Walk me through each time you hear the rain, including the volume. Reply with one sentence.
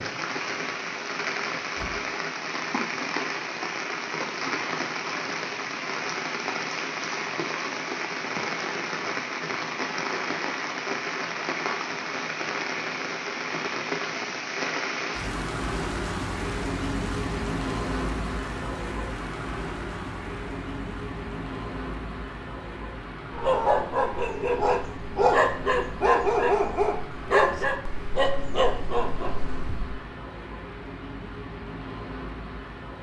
The rain can be heard from 0.0 to 32.9 s, getting quieter.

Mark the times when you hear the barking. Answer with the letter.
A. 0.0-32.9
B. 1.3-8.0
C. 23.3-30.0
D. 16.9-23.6
C.